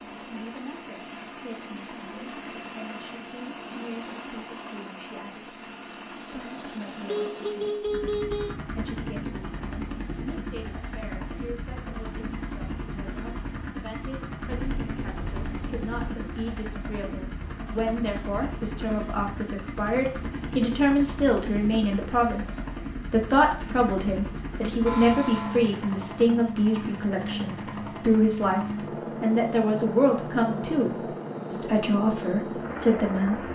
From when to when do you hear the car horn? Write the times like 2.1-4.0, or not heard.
7.0-8.6, 14.5-16.0, 24.9-25.6.